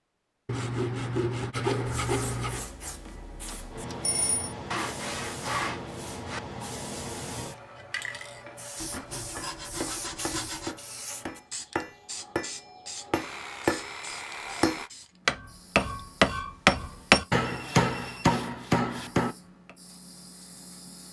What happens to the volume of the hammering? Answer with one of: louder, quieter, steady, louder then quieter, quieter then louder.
louder.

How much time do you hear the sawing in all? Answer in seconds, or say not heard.
9 s.